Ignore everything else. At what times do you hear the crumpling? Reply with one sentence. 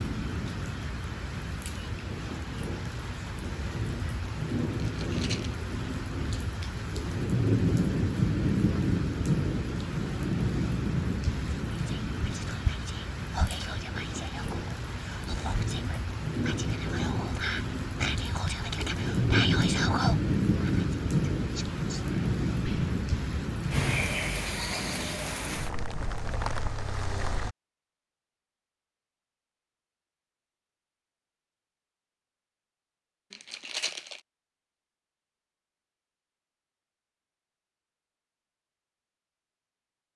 The crumpling can be heard from 4.8 to 5.6 s and from 33.3 to 34.2 s.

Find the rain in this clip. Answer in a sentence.
The rain can be heard from 0.0 to 27.6 s.